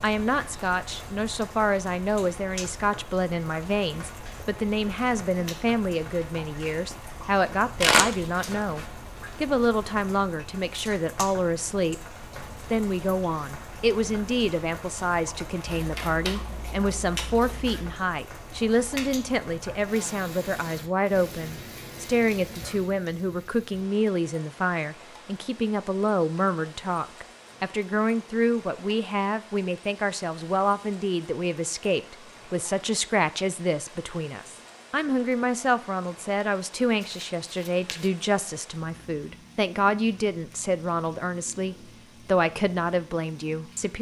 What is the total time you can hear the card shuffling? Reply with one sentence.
The card shuffling can be heard for 5 seconds in total.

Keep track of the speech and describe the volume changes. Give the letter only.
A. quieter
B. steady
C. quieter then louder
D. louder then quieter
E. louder
B.